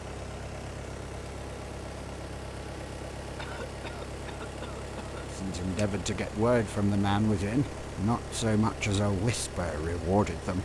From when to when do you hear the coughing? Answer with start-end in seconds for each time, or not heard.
3.4-5.3.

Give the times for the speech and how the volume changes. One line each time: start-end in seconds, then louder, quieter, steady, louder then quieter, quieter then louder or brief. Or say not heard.
5.3-10.6 steady.